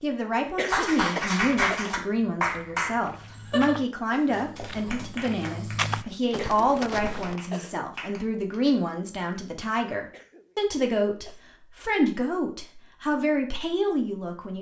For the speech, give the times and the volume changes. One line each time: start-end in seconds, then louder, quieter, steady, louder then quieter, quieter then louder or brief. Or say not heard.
0.0-14.5 steady.